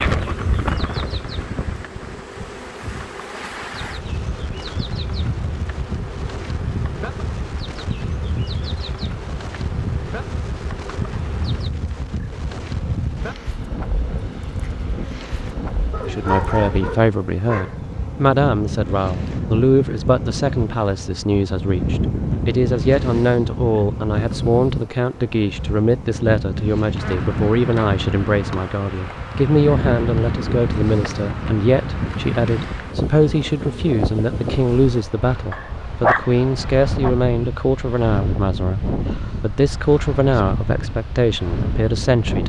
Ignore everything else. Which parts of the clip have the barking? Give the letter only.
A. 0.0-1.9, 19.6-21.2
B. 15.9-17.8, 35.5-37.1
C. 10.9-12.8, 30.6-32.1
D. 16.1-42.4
B.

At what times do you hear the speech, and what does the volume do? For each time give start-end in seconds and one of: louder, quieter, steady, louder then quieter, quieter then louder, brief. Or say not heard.
16.1-42.4 steady.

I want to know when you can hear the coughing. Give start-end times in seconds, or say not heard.
not heard.